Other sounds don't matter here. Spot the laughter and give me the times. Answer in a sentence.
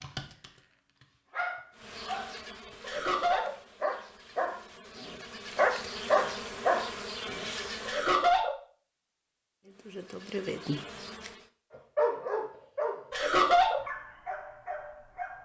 The laughter can be heard from 2.8 to 3.5 s, from 7.8 to 8.6 s and from 13.1 to 13.8 s.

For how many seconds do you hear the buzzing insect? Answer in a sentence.
The buzzing insect can be heard for 8 seconds in total.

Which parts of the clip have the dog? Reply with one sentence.
The dog can be heard from 0.0 to 7.5 s and from 11.9 to 15.4 s.